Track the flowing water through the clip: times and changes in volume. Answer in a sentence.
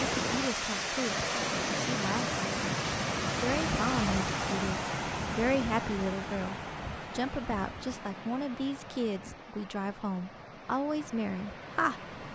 The flowing water can be heard from 0.0 to 12.2 s, getting quieter.